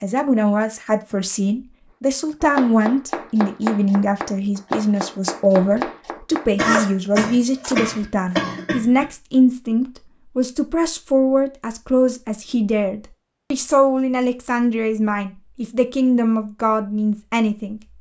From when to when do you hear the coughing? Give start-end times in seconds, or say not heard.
6.5-9.1.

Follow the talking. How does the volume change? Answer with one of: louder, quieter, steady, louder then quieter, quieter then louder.
steady.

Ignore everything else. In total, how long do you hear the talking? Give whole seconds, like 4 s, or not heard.
18 s.